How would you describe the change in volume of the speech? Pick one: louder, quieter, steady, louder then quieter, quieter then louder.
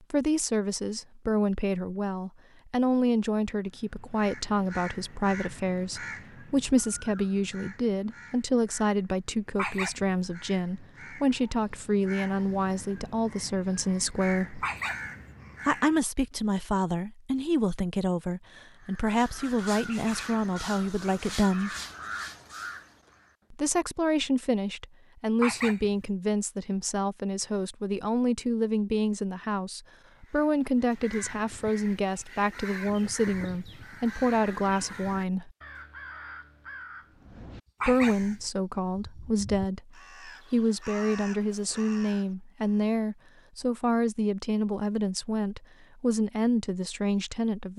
steady.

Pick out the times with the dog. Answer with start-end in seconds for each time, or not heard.
9.6-10.2, 14.6-15.2, 25.4-26.1, 37.8-38.5.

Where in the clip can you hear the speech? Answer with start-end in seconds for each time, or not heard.
0.1-14.7, 15.7-21.8, 23.5-35.5, 37.9-47.7.